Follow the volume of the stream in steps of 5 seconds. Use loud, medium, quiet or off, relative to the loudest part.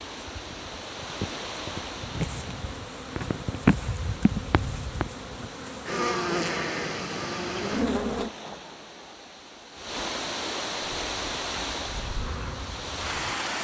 medium, medium, loud.